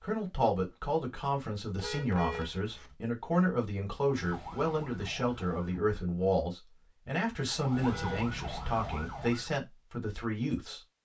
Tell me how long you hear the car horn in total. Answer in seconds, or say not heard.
2 s.